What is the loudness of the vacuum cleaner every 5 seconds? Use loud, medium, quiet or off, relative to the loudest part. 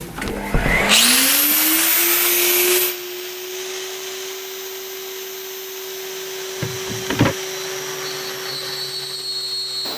loud, medium.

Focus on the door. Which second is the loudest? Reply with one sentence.
The loudest moment of the door is at 7 seconds.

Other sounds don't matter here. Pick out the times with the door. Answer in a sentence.
The door can be heard from 0.2 to 0.9 s and from 6.6 to 7.3 s.